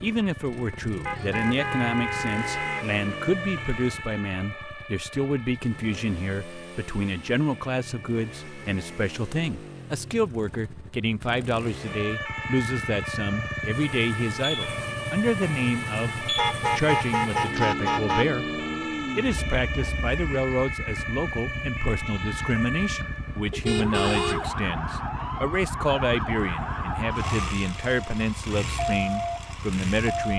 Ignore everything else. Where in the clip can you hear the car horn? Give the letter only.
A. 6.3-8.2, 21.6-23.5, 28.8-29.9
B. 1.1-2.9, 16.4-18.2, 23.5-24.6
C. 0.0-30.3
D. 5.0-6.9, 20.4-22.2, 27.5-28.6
B.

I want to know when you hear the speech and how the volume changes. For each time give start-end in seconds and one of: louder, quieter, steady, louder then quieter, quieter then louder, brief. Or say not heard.
0.0-30.3 steady.